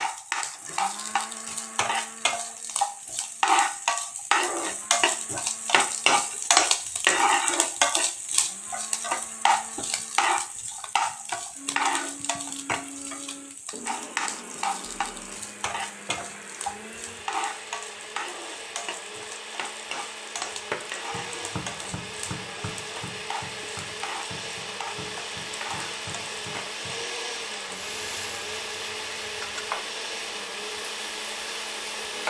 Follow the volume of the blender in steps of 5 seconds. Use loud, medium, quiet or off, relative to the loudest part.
quiet, quiet, medium, medium, loud, loud, loud.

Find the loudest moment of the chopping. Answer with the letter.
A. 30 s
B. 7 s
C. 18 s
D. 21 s
D.